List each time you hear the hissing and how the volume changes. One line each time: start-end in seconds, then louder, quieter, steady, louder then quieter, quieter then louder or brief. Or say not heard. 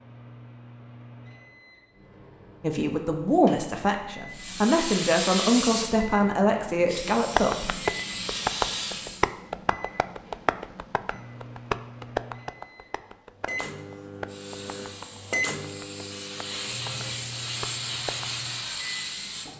4.3-9.2 quieter then louder
14.2-19.5 louder.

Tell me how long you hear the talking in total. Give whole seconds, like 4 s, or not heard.
5 s.